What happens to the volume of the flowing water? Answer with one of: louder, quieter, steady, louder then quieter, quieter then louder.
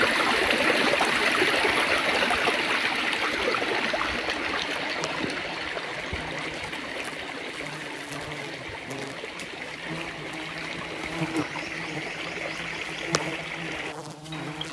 quieter.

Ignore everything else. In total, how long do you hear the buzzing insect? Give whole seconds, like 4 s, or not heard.
10 s.